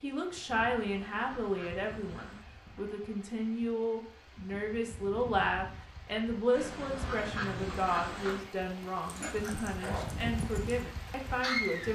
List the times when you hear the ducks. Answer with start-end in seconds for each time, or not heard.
0.8-2.5, 6.5-8.4.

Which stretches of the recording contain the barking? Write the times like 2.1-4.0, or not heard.
9.1-11.8.